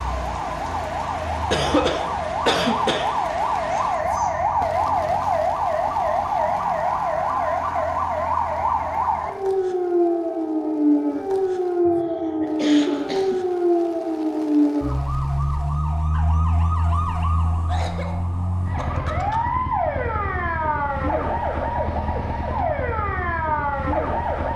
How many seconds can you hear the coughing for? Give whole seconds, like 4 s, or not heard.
5 s.